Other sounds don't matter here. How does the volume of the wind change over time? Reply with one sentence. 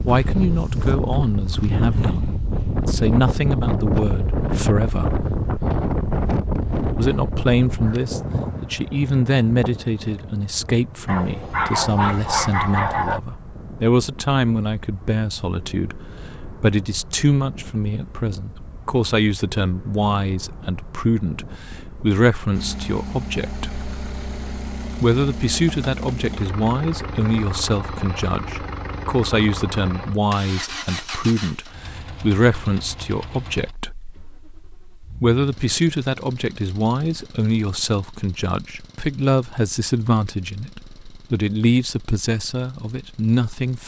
The loudness of the wind goes down.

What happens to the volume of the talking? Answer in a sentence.
The loudness of the talking stays about the same.